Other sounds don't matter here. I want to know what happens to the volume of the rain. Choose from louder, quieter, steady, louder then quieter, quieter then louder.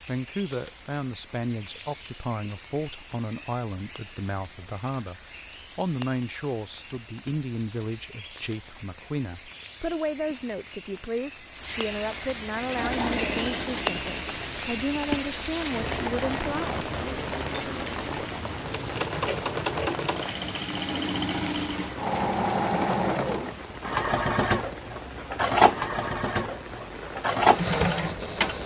louder then quieter.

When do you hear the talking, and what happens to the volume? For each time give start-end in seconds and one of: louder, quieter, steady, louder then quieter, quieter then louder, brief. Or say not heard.
0.0-16.9 steady.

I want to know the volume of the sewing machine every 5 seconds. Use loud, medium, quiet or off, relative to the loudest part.
off, off, medium, medium, loud, loud.